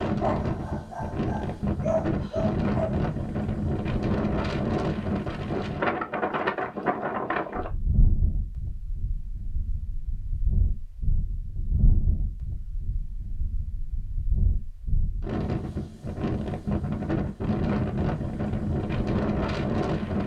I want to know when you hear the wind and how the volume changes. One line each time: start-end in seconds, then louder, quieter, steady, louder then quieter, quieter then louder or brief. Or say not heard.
0.0-20.2 quieter then louder.